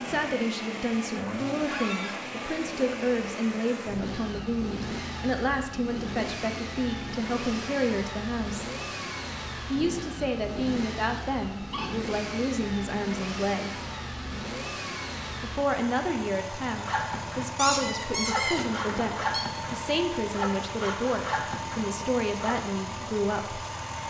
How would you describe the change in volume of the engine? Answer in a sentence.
The volume of the engine stays about the same.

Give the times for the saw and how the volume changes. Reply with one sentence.
The saw can be heard from 16.9 to 22.6 s, getting louder.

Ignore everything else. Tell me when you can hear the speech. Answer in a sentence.
You can hear the speech from 0.0 to 8.7 s, from 9.7 to 13.8 s and from 15.4 to 23.6 s.